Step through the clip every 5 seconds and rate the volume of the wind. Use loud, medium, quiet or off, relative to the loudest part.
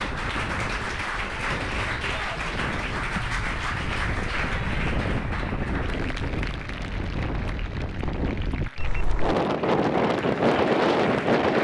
quiet, medium, loud.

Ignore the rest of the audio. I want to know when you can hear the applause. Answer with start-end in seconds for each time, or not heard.
0.0-11.5.